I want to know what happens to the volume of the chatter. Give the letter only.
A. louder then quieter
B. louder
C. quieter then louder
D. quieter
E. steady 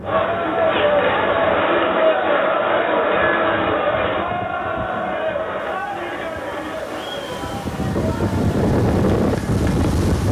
D.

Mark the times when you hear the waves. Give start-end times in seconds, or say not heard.
0.0-10.2.